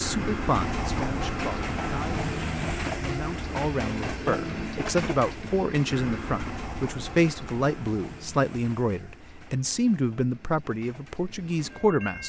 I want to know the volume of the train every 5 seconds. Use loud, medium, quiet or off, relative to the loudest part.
loud, medium, quiet.